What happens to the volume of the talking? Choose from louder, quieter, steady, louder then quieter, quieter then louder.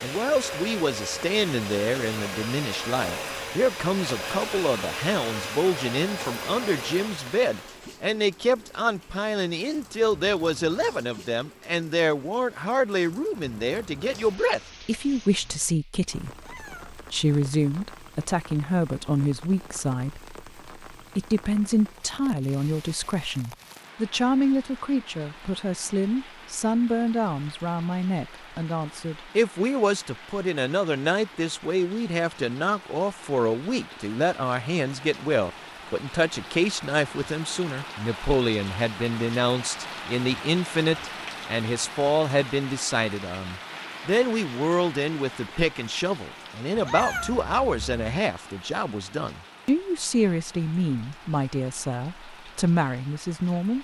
steady.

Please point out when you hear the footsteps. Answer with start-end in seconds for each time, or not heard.
not heard.